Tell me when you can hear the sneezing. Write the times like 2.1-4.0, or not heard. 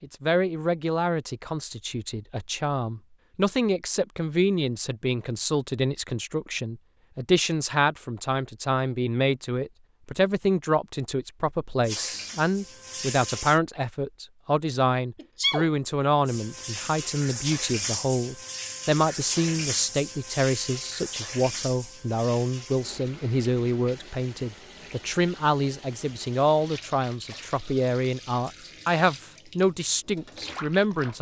15.2-15.7.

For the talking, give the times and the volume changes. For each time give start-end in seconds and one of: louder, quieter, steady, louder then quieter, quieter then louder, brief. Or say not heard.
0.0-31.1 steady.